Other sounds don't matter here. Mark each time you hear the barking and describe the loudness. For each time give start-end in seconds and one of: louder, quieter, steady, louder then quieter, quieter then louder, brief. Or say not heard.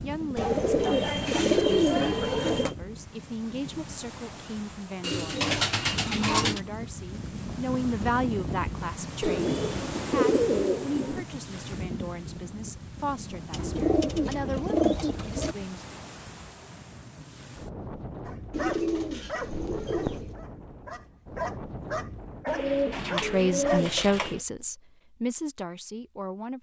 18.2-23.9 quieter then louder.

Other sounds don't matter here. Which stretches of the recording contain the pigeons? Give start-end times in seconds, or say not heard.
0.3-2.8, 5.0-6.6, 9.2-11.2, 13.5-15.6, 18.5-20.4, 22.4-24.4.